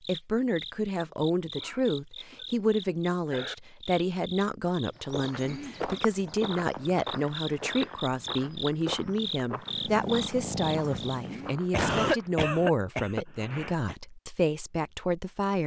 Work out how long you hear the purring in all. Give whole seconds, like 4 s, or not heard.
2 s.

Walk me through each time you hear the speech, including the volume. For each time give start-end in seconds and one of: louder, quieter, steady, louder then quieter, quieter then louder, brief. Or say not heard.
0.1-15.6 steady.